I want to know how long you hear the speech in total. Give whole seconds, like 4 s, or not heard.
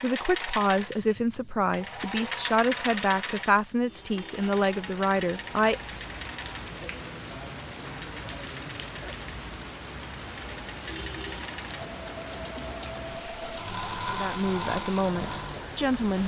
8 s.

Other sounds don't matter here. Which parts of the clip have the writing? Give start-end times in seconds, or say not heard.
not heard.